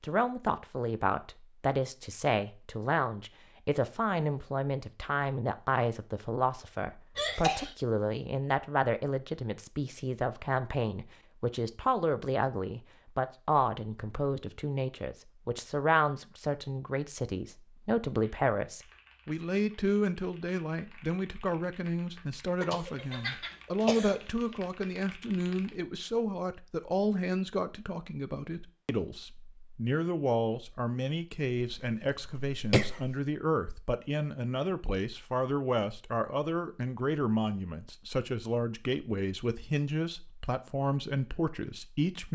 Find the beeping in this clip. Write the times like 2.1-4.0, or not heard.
not heard.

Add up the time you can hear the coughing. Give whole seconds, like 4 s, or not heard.
4 s.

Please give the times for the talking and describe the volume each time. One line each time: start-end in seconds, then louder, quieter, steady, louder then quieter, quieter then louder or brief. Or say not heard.
0.0-42.3 steady.